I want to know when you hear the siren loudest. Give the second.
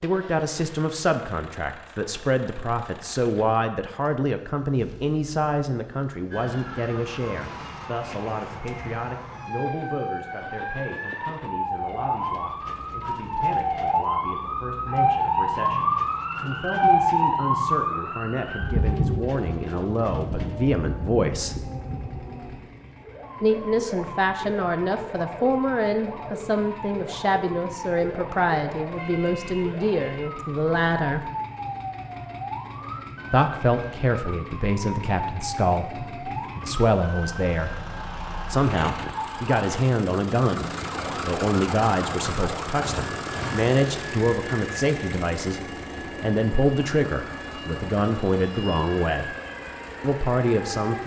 17 s.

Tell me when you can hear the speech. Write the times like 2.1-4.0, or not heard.
0.0-21.6, 23.4-31.2, 33.3-37.8, 38.5-45.6, 46.2-49.4, 50.0-51.0.